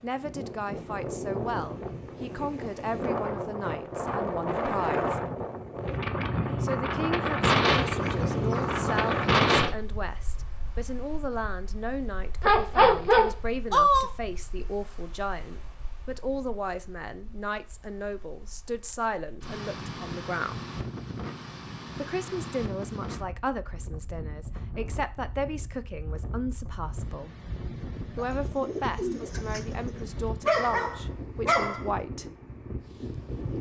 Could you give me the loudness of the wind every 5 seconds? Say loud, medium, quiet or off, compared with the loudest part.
medium, loud, quiet, quiet, quiet, quiet, quiet.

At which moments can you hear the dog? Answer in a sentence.
The dog can be heard from 12.4 to 14.1 s and from 30.4 to 31.8 s.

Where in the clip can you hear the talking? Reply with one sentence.
The talking can be heard from 0.0 to 5.2 s, from 6.6 to 20.6 s, from 21.9 to 27.4 s and from 28.1 to 32.3 s.